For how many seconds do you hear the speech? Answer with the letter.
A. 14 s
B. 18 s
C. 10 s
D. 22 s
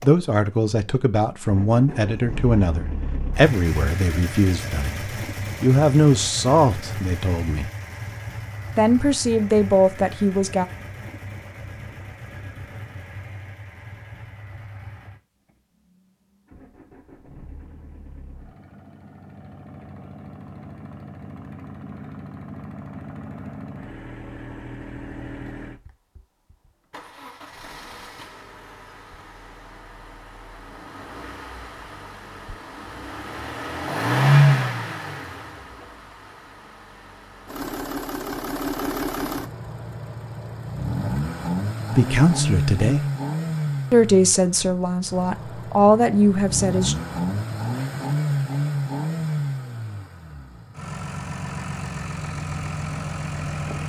A.